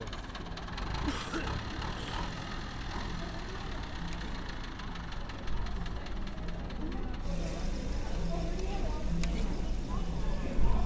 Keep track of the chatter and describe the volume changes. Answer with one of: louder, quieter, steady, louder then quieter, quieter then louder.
louder.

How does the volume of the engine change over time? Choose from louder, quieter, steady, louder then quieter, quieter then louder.
quieter.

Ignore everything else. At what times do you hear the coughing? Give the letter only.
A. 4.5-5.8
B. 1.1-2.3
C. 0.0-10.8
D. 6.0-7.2
B.